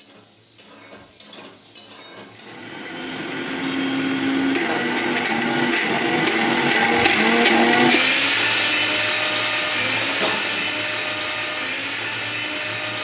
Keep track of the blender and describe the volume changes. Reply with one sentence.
The loudness of the blender goes up, then down.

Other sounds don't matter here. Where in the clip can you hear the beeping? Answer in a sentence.
You can't hear the beeping here.